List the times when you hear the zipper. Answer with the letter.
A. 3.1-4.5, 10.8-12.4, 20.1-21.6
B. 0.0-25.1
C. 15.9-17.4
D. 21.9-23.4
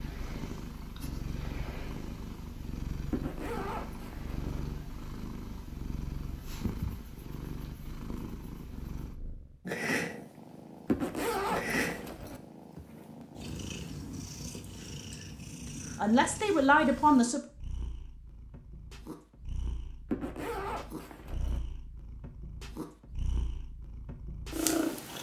A.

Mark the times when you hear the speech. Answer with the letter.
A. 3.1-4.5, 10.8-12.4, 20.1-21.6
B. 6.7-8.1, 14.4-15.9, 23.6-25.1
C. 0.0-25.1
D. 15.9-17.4
D.